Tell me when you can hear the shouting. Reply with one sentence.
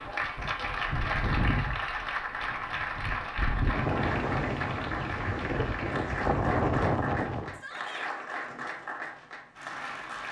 You can hear the shouting from 7.5 to 8.1 s.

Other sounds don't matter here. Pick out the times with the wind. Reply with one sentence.
You can hear the wind from 0.0 to 7.6 s.